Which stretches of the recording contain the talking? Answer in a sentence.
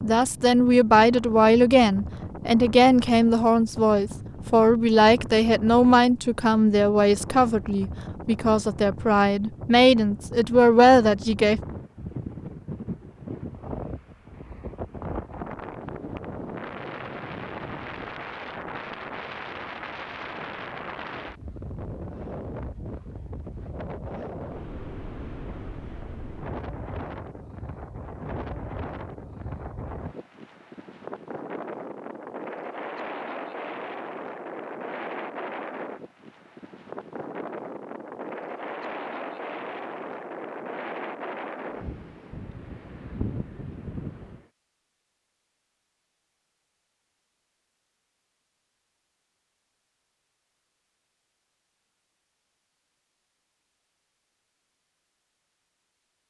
The talking can be heard from 0.0 to 11.6 s.